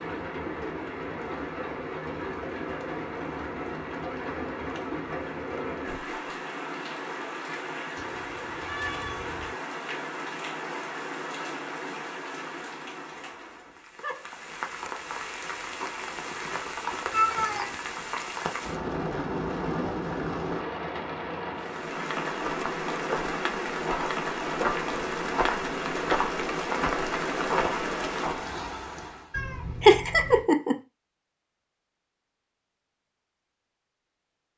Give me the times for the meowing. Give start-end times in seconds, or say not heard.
8.0-9.6, 17.1-17.8, 29.3-30.4.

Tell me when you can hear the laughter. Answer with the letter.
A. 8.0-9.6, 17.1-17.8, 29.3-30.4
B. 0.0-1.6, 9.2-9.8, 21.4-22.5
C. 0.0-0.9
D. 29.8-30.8
D.